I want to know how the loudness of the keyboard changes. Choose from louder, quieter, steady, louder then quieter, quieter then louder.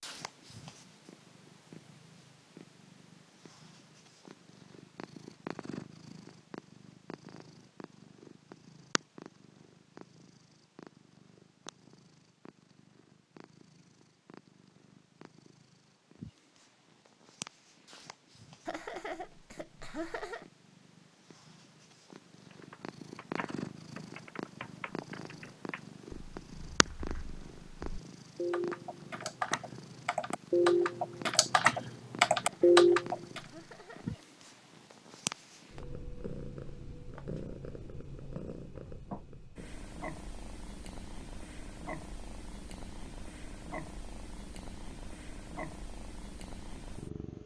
louder.